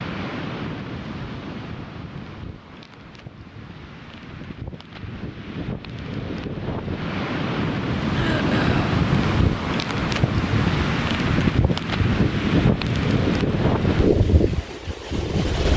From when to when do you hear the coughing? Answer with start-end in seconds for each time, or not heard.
8.1-8.9.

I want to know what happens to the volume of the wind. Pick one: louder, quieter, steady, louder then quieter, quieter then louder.
louder.